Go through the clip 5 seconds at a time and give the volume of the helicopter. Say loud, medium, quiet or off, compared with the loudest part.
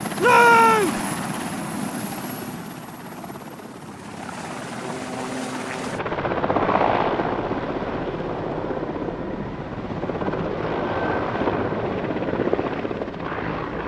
medium, loud, loud.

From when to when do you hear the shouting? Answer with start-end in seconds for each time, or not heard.
0.2-1.0.